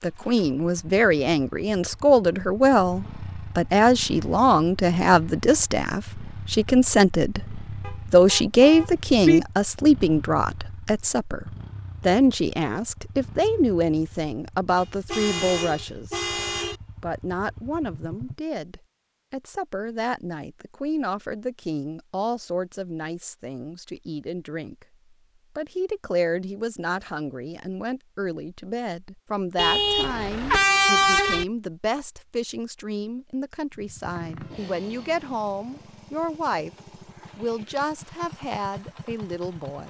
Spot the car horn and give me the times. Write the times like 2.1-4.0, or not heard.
7.8-9.4, 14.8-16.8, 29.6-31.4.